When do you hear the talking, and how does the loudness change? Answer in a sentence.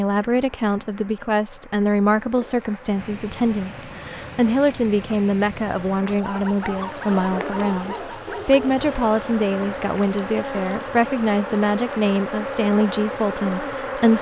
The talking can be heard from 0.0 to 14.1 s, at a steady volume.